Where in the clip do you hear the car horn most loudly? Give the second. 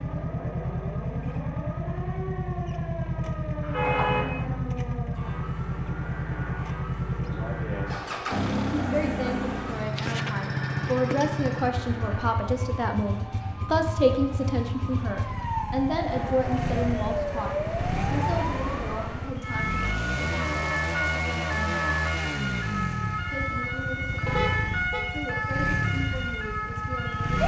4 s.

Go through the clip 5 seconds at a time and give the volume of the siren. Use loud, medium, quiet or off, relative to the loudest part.
medium, medium, medium, loud, loud, loud.